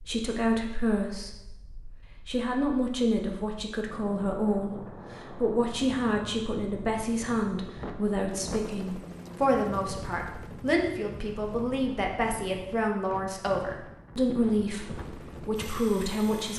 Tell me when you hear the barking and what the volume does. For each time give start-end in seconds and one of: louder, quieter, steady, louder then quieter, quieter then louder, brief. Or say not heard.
not heard.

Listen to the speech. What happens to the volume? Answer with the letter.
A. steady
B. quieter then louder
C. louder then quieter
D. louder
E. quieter
A.